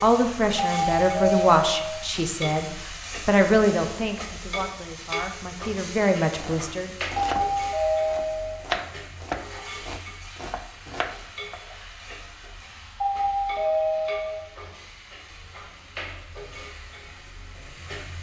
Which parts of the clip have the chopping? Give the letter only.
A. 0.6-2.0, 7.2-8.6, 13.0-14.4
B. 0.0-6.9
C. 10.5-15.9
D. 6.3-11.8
D.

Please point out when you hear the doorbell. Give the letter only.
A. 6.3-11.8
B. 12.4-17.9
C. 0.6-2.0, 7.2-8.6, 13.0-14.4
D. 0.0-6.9
C.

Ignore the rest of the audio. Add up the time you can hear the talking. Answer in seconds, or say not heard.
7 s.